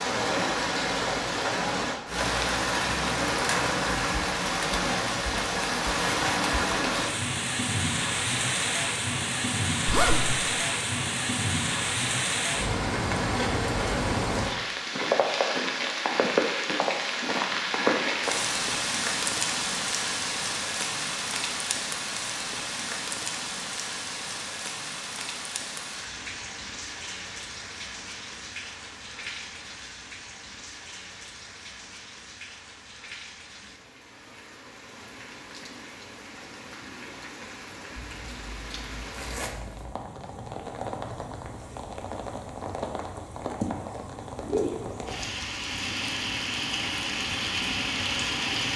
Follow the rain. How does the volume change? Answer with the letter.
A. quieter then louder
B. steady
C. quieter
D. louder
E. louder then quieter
A.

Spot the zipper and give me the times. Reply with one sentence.
You can hear the zipper from 9.8 to 10.4 s and from 38.0 to 40.0 s.